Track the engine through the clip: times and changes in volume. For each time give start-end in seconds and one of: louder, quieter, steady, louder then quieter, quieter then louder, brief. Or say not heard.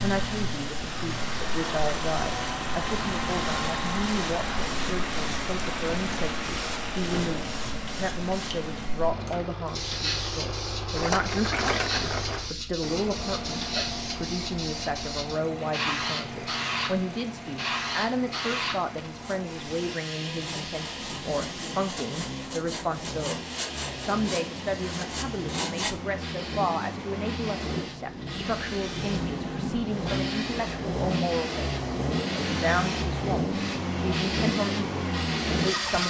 0.0-36.0 quieter then louder.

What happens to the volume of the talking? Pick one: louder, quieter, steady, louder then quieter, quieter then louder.
steady.